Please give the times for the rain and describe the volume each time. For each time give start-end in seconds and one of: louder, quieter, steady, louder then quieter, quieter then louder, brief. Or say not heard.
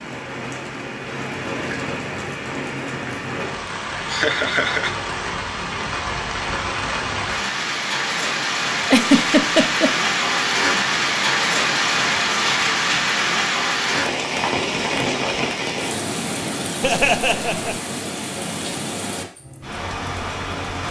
0.0-20.8 louder then quieter.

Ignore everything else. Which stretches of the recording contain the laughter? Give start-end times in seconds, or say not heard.
4.1-5.2, 8.8-9.9, 16.8-17.8.